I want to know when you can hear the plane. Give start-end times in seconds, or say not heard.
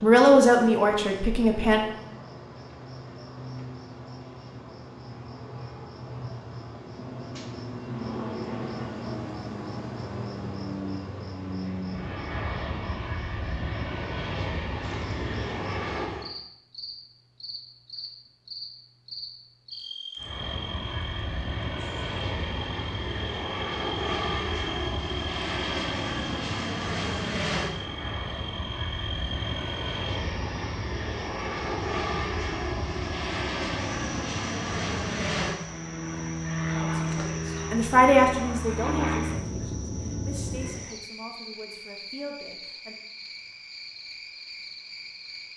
7.8-16.3, 20.1-40.9.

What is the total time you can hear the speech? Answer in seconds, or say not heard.
8 s.